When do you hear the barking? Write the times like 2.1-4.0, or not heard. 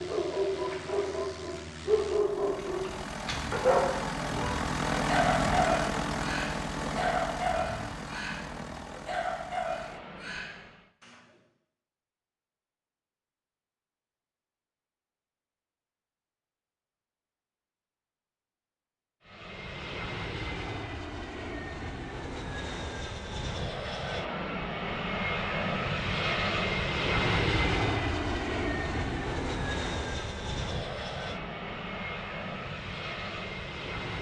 0.0-11.2.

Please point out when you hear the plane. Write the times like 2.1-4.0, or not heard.
0.0-10.9, 19.2-34.1.